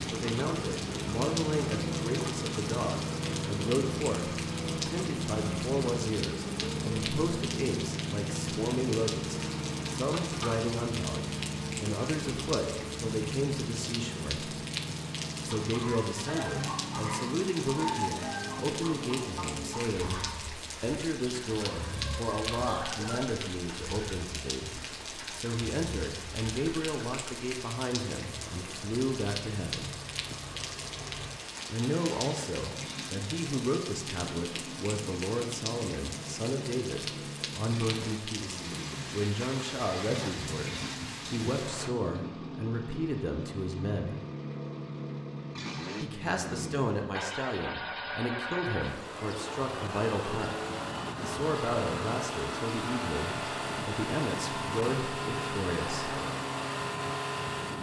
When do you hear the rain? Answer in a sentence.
You can hear the rain from 0.0 to 41.9 s.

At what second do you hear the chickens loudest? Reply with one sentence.
The volume of the chickens peaks at 18 seconds.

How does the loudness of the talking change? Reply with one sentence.
The volume of the talking stays about the same.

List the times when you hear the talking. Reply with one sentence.
The talking can be heard from 0.1 to 14.6 s, from 15.4 to 29.9 s, from 31.6 to 44.1 s, from 46.0 to 50.6 s and from 51.2 to 56.2 s.